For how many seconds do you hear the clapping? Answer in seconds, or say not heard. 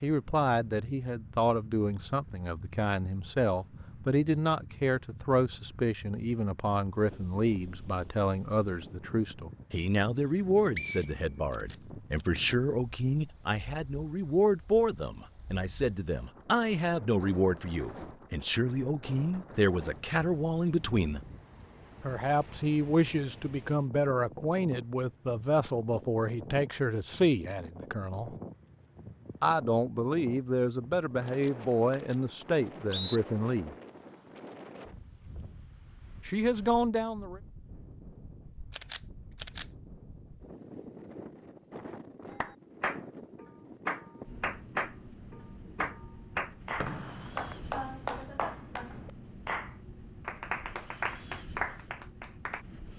10 s.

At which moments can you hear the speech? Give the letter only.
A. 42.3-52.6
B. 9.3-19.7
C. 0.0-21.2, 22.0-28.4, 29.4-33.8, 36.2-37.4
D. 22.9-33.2
C.